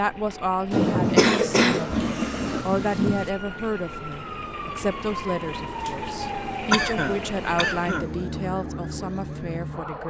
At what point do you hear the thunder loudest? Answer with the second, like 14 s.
1 s.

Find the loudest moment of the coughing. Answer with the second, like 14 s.
1 s.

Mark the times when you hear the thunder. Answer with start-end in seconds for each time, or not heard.
0.7-3.3.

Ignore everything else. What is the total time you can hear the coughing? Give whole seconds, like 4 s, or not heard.
3 s.